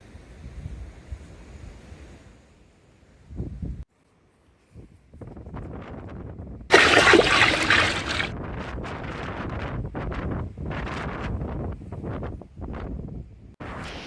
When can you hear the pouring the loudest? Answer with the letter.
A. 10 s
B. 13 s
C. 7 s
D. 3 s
C.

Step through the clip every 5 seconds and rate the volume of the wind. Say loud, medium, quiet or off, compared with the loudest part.
medium, loud, loud.